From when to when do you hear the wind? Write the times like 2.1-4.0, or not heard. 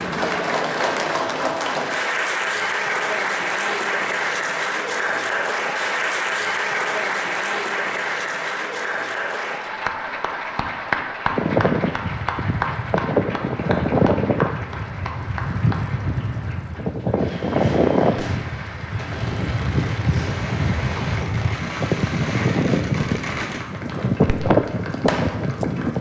11.3-25.9.